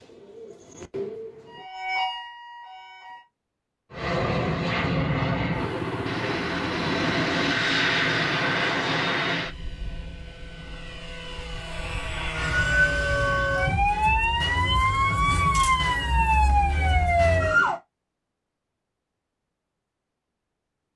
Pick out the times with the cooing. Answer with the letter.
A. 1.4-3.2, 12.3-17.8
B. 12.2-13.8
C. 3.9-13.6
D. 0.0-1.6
D.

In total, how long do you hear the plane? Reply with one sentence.
You can hear the plane for 10 seconds altogether.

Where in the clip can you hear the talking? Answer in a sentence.
You can't hear the talking here.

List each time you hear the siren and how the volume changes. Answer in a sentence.
The siren can be heard briefly from 1.4 to 3.2 s; and from 12.3 to 17.8 s, at a steady volume.